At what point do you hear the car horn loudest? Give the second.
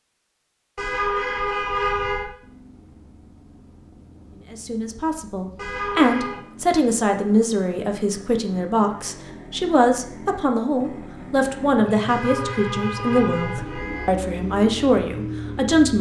2 s.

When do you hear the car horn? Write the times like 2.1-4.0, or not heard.
0.8-2.3, 5.5-6.4, 12.1-14.1.